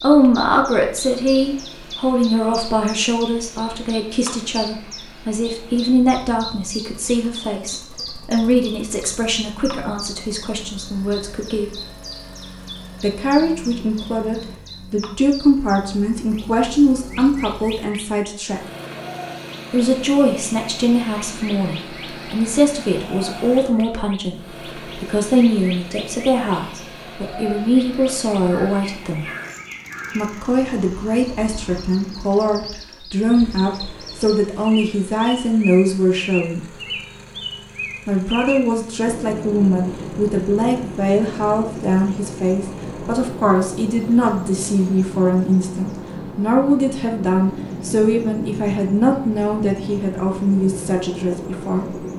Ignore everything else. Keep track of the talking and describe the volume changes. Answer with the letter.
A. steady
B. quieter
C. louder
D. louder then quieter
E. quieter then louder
A.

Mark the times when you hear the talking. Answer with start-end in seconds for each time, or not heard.
0.0-11.7, 13.0-18.6, 19.7-29.2, 30.1-36.6, 38.0-51.9.